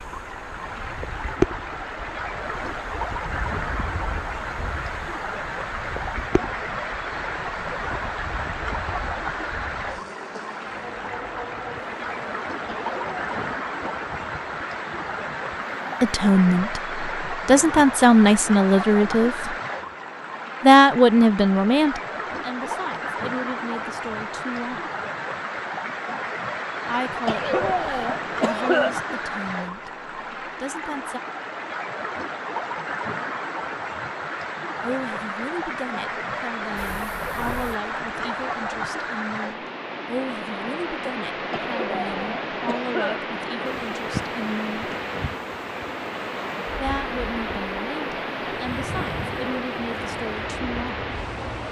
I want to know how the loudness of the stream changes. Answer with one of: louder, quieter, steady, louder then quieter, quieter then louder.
steady.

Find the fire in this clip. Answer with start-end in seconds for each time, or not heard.
not heard.